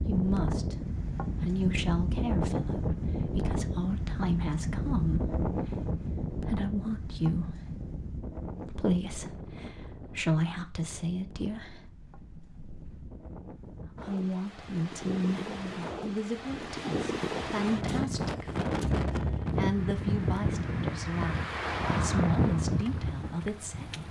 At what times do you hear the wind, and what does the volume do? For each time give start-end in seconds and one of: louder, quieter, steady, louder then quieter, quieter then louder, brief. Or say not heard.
0.0-24.0 quieter then louder.